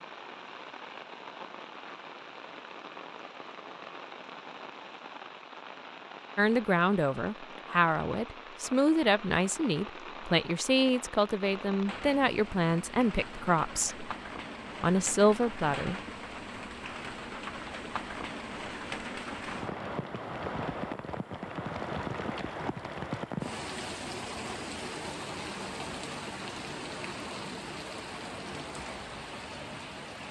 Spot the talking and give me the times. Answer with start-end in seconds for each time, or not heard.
6.3-14.1, 14.8-15.9.